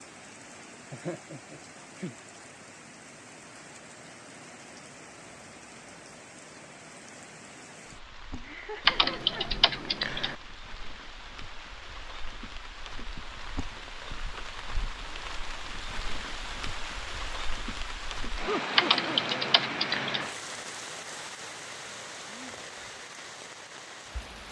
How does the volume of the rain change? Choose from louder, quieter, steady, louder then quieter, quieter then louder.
louder.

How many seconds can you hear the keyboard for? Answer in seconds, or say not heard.
3 s.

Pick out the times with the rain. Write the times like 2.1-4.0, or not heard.
0.0-24.4.